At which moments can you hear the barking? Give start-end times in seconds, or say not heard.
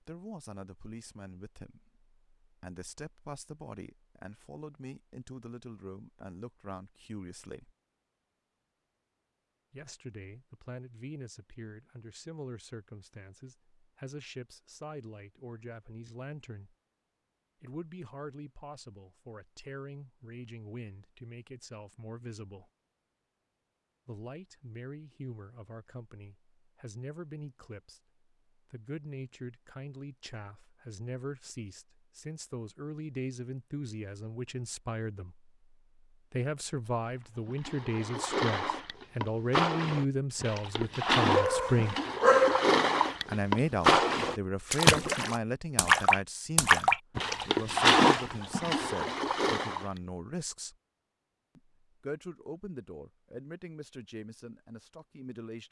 41.4-42.7.